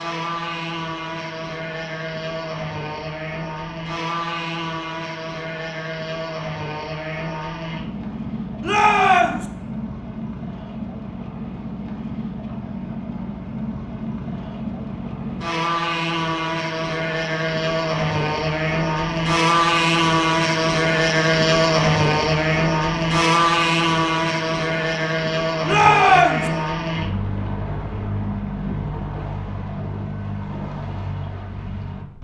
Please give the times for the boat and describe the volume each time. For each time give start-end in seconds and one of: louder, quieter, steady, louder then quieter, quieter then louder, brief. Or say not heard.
0.0-32.1 louder then quieter.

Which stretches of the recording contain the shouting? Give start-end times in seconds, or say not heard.
8.6-9.4, 25.6-26.5.